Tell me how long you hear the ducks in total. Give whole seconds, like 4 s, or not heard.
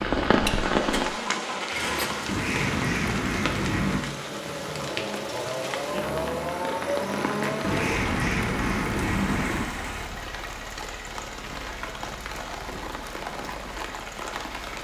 4 s.